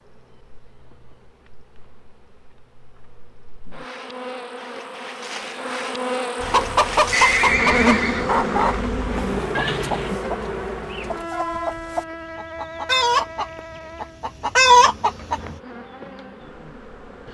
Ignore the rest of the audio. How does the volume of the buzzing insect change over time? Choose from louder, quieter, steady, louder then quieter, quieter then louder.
louder then quieter.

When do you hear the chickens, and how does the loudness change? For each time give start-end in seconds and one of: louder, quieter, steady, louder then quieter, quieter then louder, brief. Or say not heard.
6.4-15.6 quieter then louder.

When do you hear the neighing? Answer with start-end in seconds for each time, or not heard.
7.1-8.8.